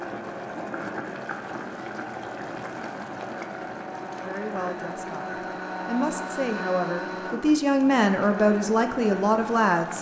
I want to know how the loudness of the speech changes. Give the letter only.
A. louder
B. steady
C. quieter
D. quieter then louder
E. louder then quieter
A.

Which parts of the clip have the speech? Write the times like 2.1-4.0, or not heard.
4.2-9.9.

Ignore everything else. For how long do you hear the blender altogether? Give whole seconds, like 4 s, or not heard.
10 s.